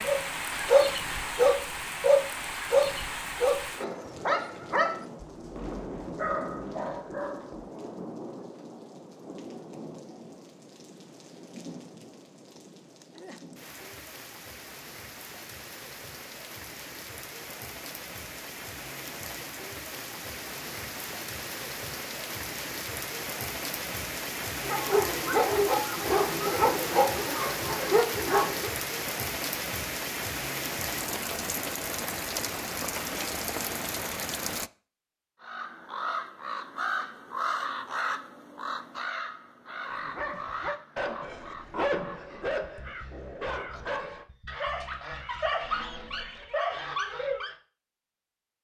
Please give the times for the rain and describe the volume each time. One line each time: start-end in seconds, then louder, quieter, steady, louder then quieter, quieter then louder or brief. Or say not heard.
0.0-34.7 quieter then louder.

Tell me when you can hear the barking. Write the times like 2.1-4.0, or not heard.
0.0-7.7, 24.6-28.7, 39.8-47.5.